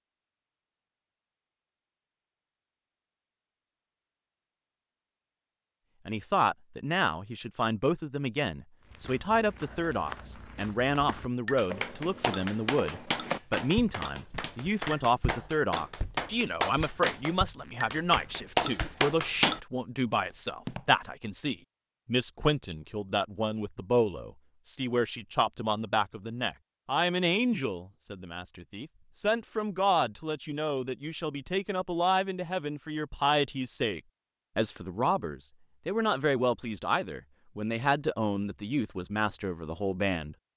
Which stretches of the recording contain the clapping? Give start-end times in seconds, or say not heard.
10.6-19.6.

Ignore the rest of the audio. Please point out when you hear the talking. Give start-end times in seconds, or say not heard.
6.0-40.5.